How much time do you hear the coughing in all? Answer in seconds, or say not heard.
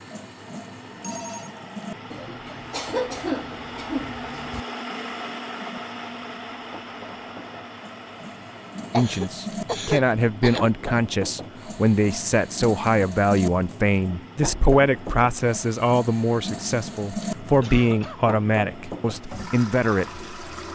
5 s.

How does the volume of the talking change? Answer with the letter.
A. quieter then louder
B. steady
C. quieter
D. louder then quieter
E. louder
B.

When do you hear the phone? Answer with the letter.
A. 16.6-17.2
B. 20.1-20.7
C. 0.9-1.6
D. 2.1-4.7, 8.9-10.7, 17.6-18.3
C.